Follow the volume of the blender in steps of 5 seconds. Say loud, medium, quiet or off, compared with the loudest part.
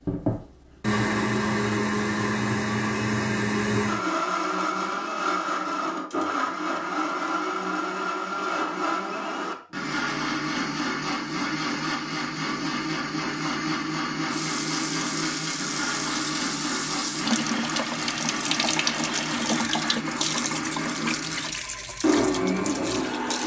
loud, loud, loud, medium, loud.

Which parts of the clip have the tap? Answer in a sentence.
You can hear the tap from 14.2 to 23.4 s.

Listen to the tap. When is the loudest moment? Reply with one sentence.
The volume of the tap peaks at 19 seconds.